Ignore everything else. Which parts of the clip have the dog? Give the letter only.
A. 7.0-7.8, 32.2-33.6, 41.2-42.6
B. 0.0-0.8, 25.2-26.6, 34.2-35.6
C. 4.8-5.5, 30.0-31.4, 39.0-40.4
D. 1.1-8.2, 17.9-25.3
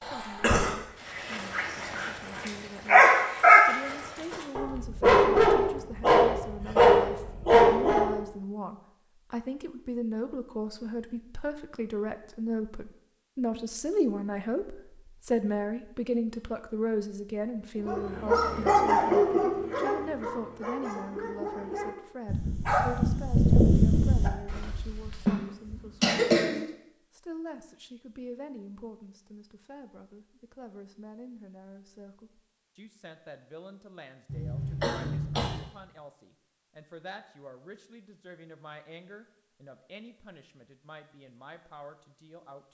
D.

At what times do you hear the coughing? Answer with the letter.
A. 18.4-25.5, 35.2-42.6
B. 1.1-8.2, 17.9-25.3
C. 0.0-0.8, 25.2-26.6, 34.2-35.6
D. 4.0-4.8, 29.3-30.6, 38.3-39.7
C.